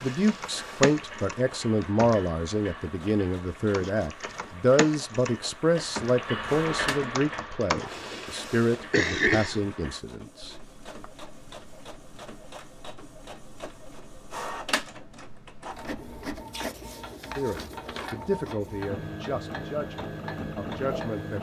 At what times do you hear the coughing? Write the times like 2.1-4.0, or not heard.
7.9-9.7.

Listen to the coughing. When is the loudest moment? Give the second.
9 s.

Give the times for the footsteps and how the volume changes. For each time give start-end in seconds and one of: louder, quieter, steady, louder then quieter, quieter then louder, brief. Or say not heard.
not heard.